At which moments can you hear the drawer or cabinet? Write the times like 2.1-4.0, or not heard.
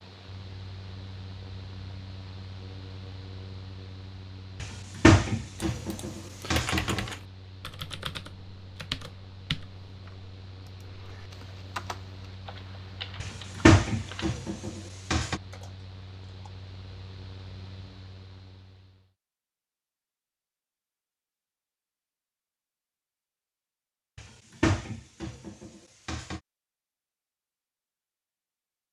4.6-7.1, 13.2-15.4, 24.1-26.4.